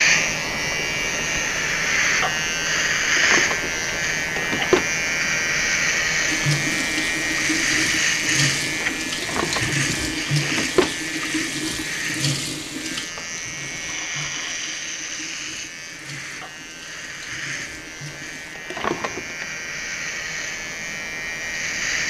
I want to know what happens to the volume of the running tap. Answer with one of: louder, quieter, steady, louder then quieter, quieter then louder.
quieter.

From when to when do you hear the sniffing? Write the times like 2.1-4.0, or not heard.
not heard.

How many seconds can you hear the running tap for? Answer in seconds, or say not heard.
12 s.